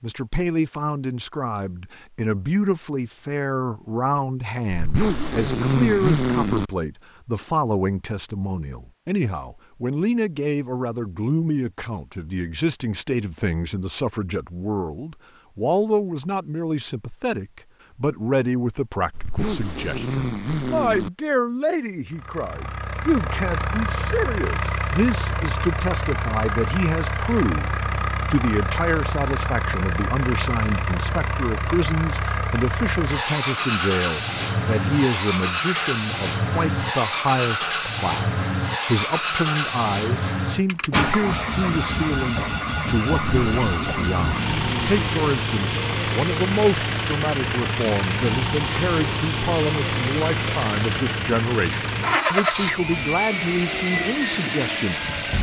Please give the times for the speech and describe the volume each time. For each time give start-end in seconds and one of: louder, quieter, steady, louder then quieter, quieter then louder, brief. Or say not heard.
0.0-55.1 steady.